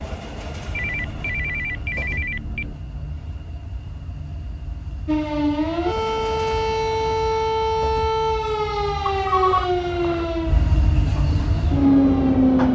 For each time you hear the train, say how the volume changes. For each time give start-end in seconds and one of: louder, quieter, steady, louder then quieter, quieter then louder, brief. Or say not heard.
0.0-12.7 louder.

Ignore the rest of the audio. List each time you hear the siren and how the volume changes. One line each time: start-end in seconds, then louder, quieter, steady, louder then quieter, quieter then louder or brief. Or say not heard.
5.0-12.7 quieter.